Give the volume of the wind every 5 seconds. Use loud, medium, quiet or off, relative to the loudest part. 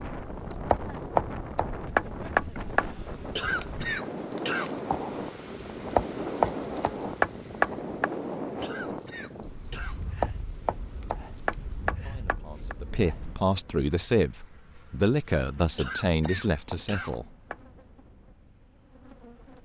loud, loud, medium, quiet.